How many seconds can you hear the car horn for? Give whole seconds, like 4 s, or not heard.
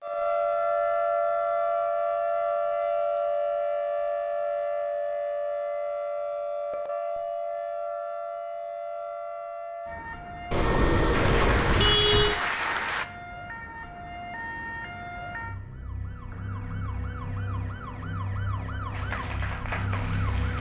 2 s.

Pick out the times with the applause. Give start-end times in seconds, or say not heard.
11.1-13.1, 18.9-20.5.